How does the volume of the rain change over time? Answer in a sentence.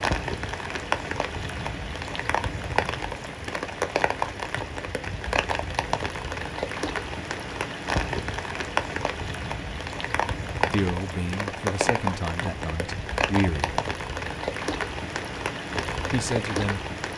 The volume of the rain stays about the same.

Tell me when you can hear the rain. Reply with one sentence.
You can hear the rain from 0.0 to 17.1 s.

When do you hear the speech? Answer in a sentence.
The speech can be heard from 10.7 to 13.8 s and from 16.1 to 16.8 s.